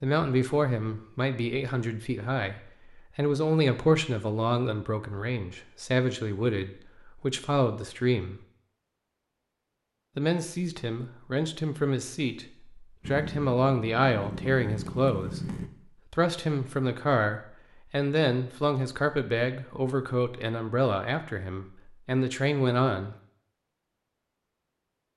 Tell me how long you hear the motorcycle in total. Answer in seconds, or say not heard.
3 s.